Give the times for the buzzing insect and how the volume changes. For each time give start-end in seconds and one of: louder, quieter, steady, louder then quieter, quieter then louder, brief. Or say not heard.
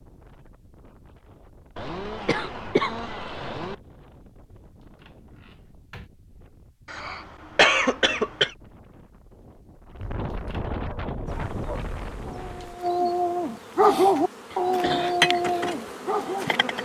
11.2-16.8 louder then quieter.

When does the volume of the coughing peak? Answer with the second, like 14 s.
8 s.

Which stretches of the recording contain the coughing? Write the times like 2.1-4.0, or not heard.
1.8-3.8, 6.8-8.6, 14.5-15.2.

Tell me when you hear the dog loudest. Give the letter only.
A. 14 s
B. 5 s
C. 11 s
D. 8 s
A.